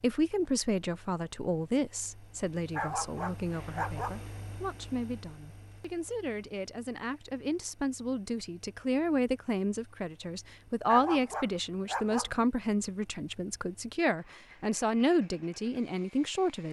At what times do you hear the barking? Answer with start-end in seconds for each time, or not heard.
2.7-4.3, 10.8-12.4.